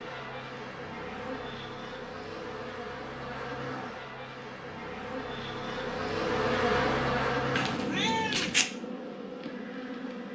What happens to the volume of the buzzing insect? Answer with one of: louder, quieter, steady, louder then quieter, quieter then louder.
louder then quieter.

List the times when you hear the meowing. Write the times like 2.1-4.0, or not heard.
7.5-8.7.